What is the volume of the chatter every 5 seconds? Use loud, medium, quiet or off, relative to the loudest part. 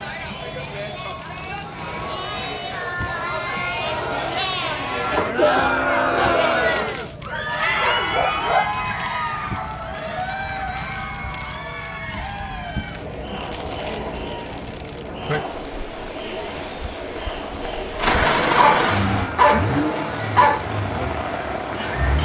medium, loud, medium, medium, medium.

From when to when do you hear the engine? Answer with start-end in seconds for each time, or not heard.
17.9-22.2.